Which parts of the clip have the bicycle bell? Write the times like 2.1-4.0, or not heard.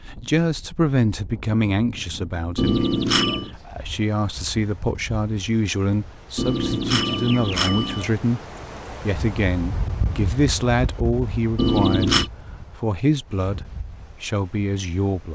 2.5-3.5, 6.3-8.1, 11.6-12.3.